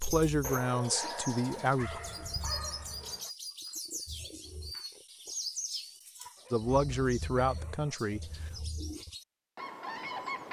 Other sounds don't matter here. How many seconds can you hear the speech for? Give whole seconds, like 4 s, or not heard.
4 s.